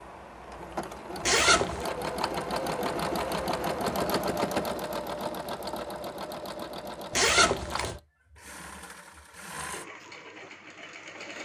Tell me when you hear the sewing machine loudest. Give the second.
4 s.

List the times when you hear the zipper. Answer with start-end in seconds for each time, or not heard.
1.2-1.9, 7.1-8.0.